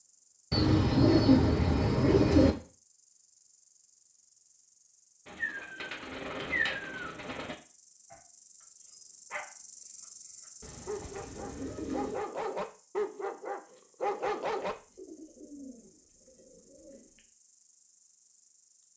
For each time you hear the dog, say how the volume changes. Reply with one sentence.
The dog can be heard from 8.1 to 14.8 s, getting quieter then louder.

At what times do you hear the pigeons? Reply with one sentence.
You can hear the pigeons from 0.5 to 2.5 s, from 5.2 to 7.5 s, from 10.6 to 12.2 s and from 14.6 to 17.2 s.